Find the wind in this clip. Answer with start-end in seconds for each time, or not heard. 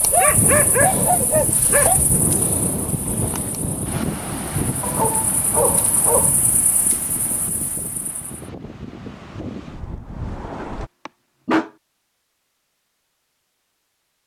0.0-10.9.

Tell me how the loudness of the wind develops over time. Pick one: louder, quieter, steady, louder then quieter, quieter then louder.
quieter.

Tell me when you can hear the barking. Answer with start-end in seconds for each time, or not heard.
0.1-2.0, 4.8-6.3, 10.6-11.7.